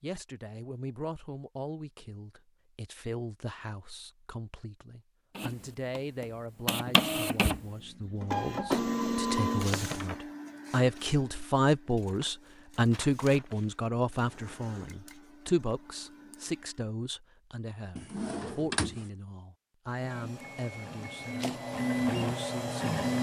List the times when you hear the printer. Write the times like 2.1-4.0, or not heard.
5.3-16.9, 19.9-23.1.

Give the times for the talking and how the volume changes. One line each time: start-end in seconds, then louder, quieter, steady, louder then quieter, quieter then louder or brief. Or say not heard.
0.0-22.9 louder then quieter.